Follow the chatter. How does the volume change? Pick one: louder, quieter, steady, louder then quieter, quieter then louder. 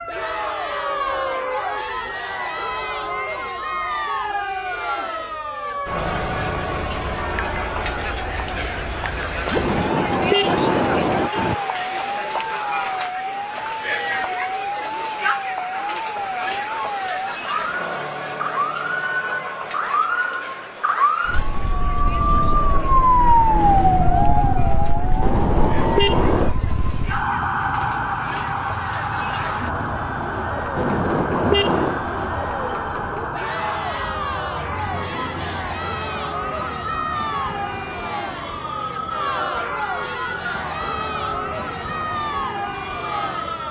quieter then louder.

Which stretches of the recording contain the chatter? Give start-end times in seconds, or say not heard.
0.1-43.6.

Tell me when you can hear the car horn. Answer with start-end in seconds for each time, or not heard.
9.6-11.6, 25.2-26.6, 30.8-32.0.